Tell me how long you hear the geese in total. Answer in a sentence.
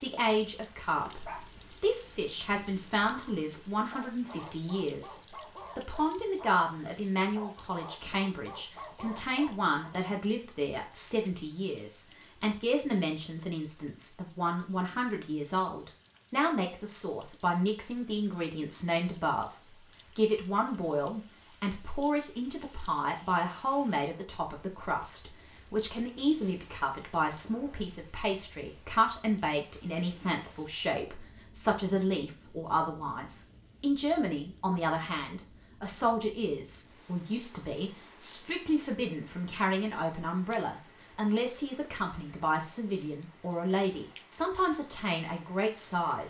You can't hear the geese here.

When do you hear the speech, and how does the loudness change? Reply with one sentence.
You can hear the speech from 0.0 to 19.6 s, at a steady volume; and from 20.1 to 46.2 s, at a steady volume.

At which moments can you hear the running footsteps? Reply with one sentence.
You can't hear the running footsteps here.